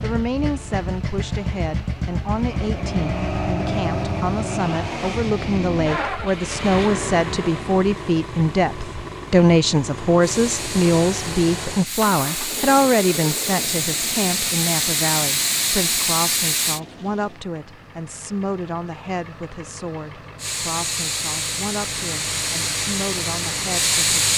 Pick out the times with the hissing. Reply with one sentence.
You can hear the hissing from 10.2 to 16.8 s and from 20.4 to 24.3 s.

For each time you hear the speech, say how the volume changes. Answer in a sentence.
The speech can be heard from 0.0 to 24.2 s, getting louder then quieter.